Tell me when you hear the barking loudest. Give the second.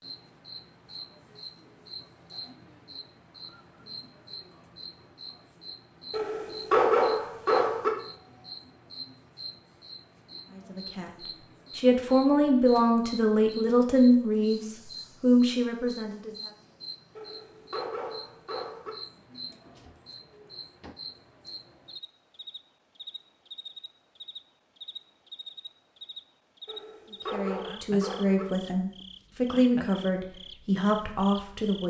7 s.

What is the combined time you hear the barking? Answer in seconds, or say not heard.
5 s.